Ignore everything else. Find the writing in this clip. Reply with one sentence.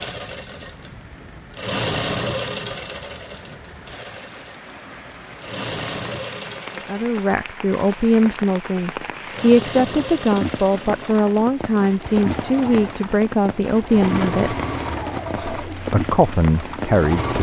The writing can't be heard in this clip.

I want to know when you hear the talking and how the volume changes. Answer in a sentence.
You can hear the talking from 6.8 to 14.6 s, at a steady volume; and briefly from 15.3 to 17.3 s.